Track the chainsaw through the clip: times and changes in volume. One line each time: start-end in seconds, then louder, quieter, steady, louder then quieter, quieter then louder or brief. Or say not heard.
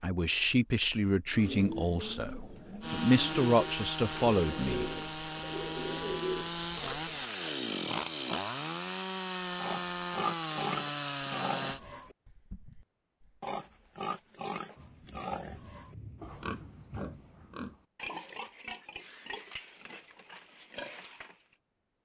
2.8-11.8 steady.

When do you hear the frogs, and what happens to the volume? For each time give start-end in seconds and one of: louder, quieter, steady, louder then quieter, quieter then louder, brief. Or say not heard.
not heard.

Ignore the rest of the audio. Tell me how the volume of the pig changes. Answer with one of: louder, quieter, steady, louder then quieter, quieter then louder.
quieter.